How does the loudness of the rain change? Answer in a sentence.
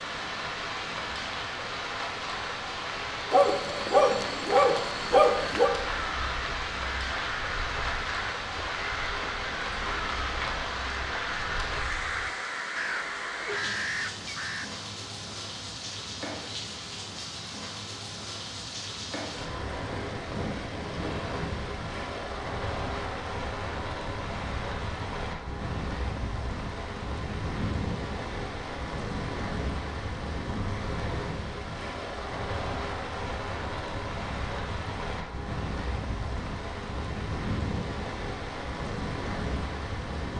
The volume of the rain stays about the same.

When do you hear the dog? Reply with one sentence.
You can hear the dog from 3.3 to 5.7 s.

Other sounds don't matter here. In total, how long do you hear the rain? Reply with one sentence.
The rain can be heard for 40 seconds in total.